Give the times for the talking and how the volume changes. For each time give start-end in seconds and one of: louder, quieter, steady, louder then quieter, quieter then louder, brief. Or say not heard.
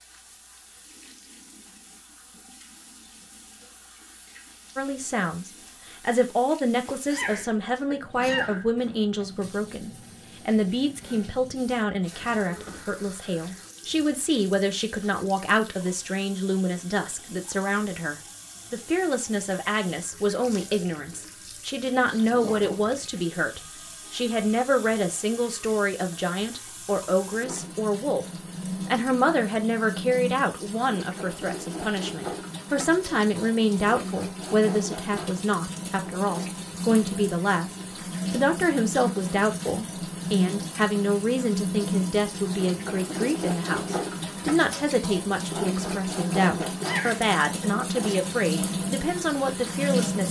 4.8-50.2 steady.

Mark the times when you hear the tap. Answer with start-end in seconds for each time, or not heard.
0.0-50.2.